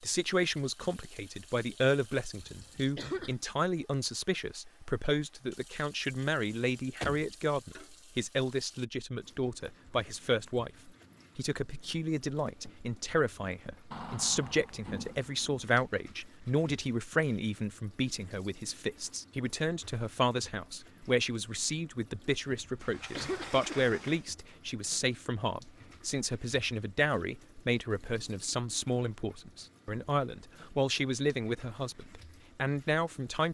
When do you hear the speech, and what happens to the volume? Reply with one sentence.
You can hear the speech from 0.0 to 33.5 s, at a steady volume.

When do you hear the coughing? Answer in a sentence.
The coughing can be heard from 2.4 to 3.4 s and from 22.6 to 23.9 s.